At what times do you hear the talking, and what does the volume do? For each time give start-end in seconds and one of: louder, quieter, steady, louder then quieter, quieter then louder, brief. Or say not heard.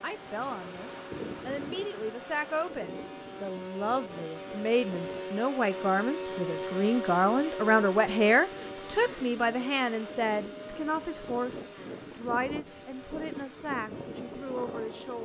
0.0-15.2 louder then quieter.